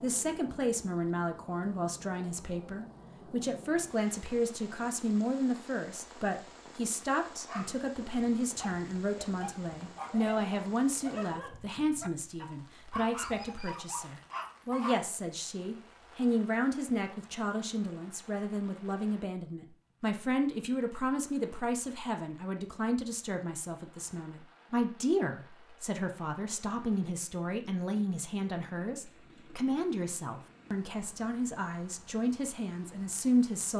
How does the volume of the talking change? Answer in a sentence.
The loudness of the talking stays about the same.